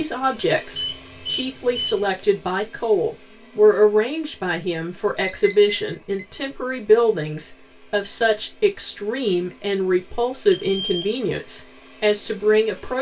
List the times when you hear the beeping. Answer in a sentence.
The beeping can be heard from 0.8 to 2.0 s, from 5.2 to 6.2 s and from 10.5 to 11.2 s.